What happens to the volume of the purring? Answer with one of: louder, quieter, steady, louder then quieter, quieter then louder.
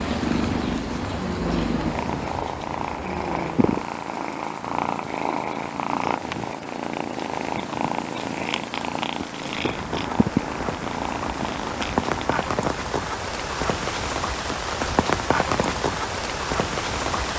steady.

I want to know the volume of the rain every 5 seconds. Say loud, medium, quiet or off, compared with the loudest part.
medium, quiet, loud, loud.